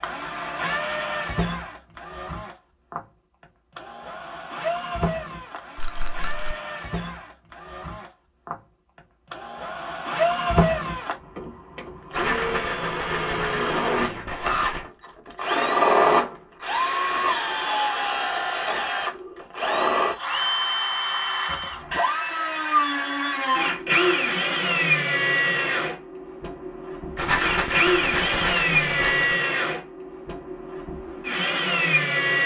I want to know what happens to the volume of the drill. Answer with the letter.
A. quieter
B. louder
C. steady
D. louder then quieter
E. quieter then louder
B.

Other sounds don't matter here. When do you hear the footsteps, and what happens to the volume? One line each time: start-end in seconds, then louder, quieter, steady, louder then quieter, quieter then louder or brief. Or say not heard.
not heard.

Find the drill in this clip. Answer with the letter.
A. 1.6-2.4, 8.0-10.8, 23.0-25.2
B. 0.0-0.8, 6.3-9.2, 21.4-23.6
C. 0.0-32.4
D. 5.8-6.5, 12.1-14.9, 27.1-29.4
C.